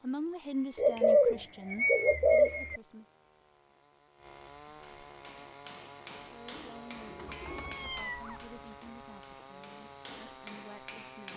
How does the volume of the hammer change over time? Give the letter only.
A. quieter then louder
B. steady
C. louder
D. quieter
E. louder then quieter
A.